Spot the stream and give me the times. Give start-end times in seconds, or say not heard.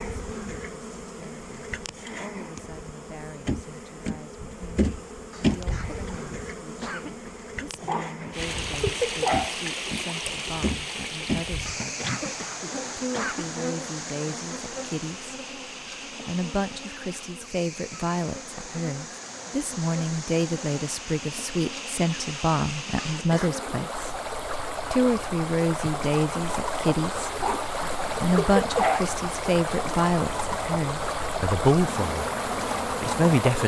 8.3-33.6.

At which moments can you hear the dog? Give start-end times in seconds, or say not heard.
7.8-9.6, 27.3-29.1.